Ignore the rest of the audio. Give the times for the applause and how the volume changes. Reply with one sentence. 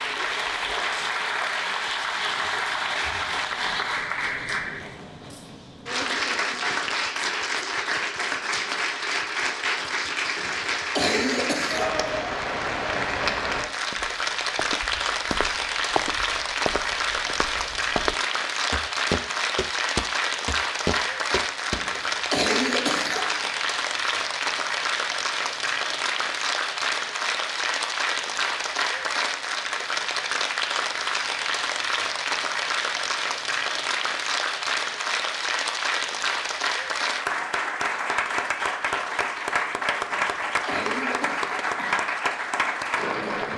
You can hear the applause from 0.0 to 43.5 s, at a steady volume.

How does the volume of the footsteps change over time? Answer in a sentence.
The volume of the footsteps goes up.